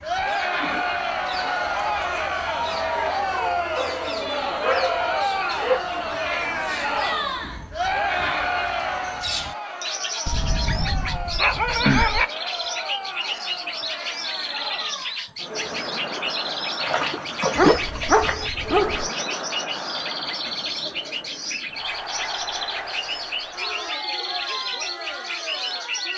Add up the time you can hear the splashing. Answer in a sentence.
The splashing can be heard for 2 seconds in total.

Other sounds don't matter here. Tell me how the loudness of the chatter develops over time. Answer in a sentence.
The loudness of the chatter goes down.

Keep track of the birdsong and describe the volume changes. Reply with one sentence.
The volume of the birdsong goes up.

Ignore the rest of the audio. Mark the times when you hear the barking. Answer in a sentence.
You can hear the barking from 3.8 to 5.8 s, from 10.2 to 12.2 s and from 17.6 to 19.1 s.